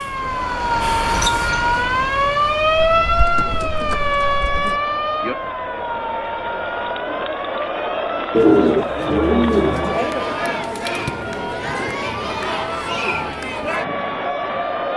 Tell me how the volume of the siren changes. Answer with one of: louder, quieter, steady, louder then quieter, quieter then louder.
quieter.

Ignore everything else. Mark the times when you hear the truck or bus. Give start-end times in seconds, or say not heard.
0.0-4.5.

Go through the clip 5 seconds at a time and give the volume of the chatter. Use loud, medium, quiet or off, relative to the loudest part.
medium, loud, loud.